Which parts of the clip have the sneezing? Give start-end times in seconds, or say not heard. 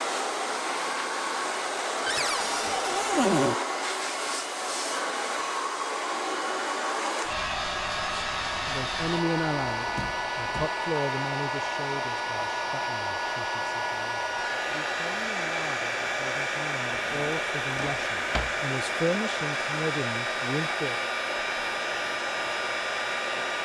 not heard.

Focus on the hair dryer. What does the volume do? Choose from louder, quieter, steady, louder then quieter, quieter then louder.
steady.